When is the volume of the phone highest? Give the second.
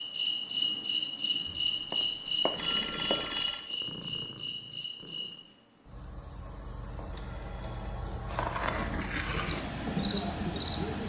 3 s.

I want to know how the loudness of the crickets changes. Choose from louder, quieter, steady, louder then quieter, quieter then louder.
quieter then louder.